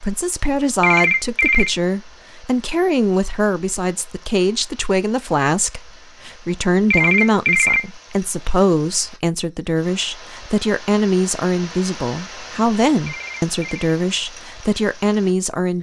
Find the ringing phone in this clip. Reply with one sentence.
The ringing phone can be heard from 0.8 to 1.8 s, from 6.9 to 7.8 s and from 13.1 to 13.9 s.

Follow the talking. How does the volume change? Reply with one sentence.
The loudness of the talking stays about the same.